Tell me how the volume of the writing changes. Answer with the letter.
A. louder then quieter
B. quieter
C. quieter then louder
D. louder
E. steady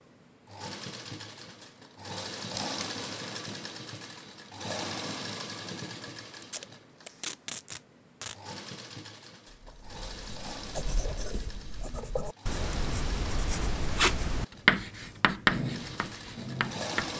D.